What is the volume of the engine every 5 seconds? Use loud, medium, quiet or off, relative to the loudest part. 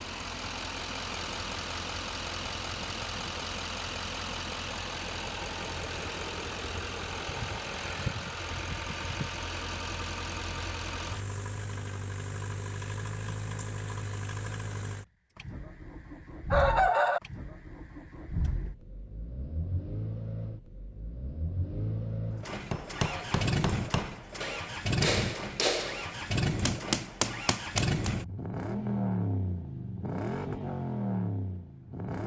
loud, loud, medium, medium, loud, loud, loud.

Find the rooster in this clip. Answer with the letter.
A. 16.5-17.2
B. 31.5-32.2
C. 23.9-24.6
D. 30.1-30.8
A.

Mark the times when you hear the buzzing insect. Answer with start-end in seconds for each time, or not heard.
not heard.